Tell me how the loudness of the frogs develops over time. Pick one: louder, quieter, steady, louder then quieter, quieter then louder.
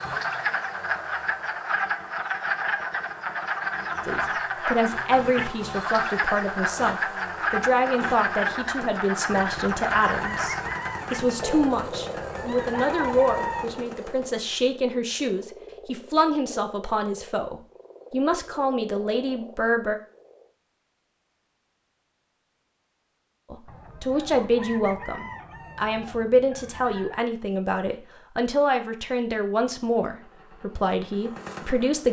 quieter.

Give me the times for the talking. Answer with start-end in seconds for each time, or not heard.
4.0-19.9, 23.5-32.0.